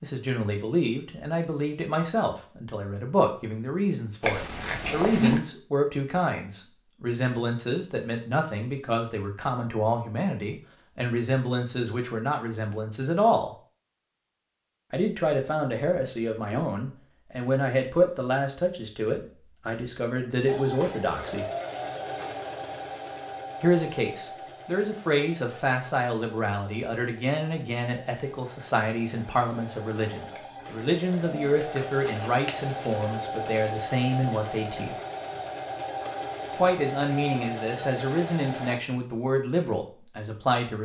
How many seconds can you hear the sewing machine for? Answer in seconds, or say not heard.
18 s.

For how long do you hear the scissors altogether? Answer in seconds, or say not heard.
4 s.